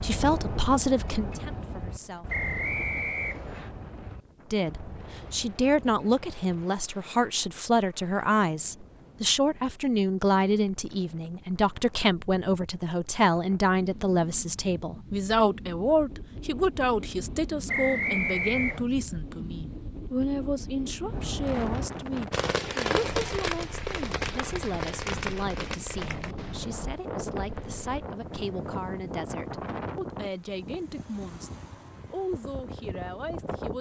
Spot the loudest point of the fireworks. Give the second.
23 s.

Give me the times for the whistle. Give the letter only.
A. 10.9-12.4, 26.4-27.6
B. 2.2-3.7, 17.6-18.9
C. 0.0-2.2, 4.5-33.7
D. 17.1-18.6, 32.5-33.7
B.